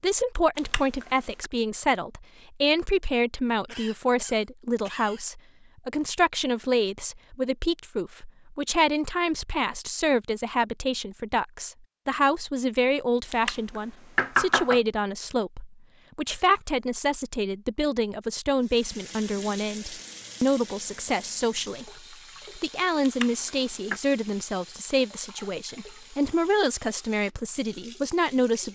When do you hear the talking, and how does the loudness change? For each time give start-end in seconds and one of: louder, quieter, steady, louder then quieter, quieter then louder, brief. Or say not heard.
0.0-28.7 steady.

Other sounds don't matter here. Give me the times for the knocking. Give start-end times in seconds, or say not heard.
0.6-1.5, 13.3-14.8, 23.1-24.0.